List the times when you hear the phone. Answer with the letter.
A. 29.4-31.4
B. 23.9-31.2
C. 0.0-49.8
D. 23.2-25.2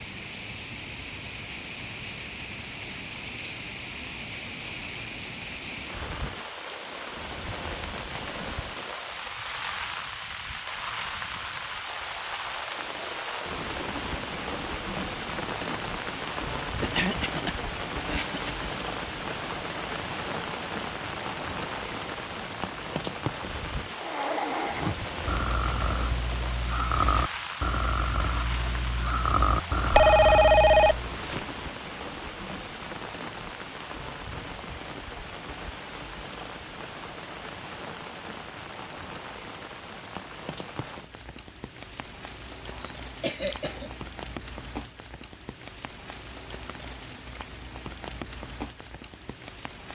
A.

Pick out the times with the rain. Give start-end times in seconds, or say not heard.
0.0-49.8.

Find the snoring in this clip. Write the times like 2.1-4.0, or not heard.
23.9-31.2.